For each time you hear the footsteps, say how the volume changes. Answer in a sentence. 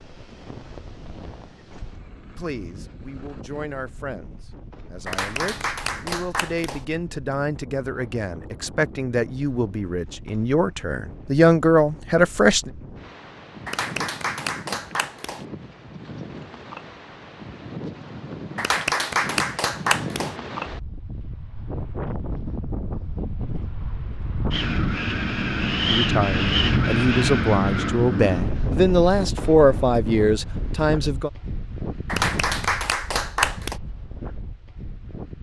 The footsteps can't be heard in this clip.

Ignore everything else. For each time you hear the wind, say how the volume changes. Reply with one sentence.
The wind can be heard from 0.0 to 35.3 s, getting louder then quieter.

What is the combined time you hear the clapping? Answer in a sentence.
The clapping can be heard for 7 seconds in total.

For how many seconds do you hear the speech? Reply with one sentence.
The speech can be heard for 16 seconds in total.